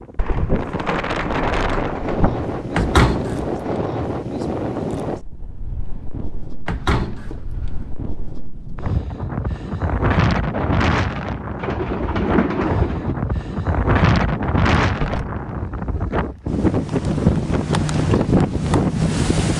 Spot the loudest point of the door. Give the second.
3 s.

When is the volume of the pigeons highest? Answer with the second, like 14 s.
12 s.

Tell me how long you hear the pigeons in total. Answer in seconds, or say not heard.
5 s.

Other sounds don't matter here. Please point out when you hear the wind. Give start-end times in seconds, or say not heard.
0.0-19.5.